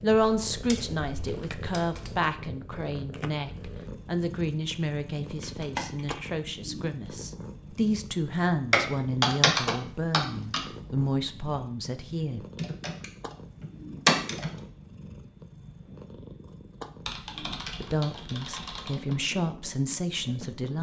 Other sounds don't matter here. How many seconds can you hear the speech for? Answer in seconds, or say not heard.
15 s.